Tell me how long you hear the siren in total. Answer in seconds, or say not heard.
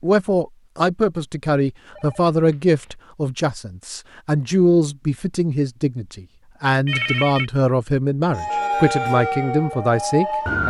2 s.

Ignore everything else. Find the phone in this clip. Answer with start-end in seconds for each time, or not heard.
1.9-3.0, 6.8-7.5.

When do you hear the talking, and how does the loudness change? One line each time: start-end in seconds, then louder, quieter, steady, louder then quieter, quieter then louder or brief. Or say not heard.
0.0-10.6 steady.